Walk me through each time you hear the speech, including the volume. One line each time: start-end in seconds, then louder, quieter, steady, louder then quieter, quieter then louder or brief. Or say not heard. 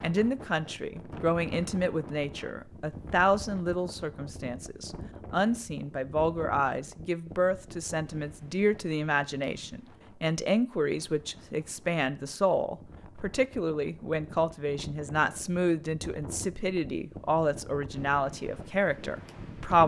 0.0-19.8 steady.